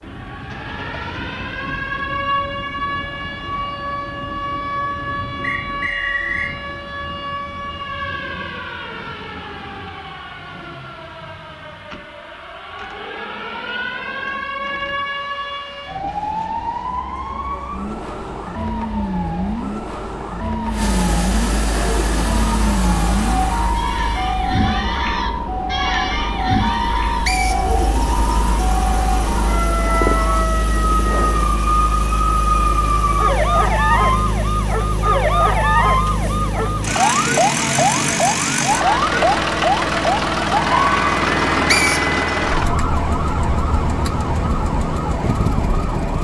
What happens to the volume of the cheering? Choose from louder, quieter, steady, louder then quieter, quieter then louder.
louder then quieter.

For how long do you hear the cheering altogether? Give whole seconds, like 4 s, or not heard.
9 s.